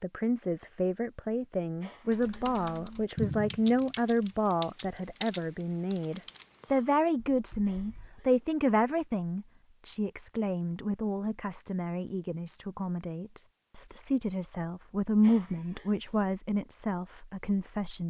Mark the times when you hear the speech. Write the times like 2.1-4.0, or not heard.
0.0-18.0.